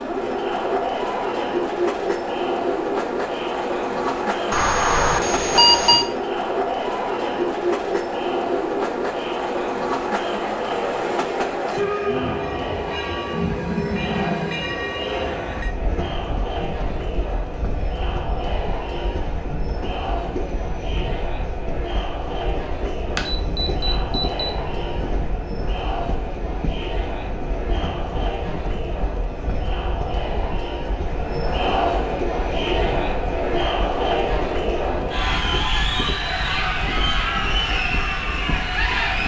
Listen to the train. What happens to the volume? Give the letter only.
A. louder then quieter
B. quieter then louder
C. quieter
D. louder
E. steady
C.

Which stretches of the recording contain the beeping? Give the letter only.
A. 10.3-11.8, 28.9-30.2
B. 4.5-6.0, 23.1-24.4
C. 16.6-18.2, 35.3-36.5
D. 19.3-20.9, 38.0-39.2
B.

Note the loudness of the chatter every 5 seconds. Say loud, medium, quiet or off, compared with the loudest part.
medium, medium, medium, medium, medium, medium, loud, loud.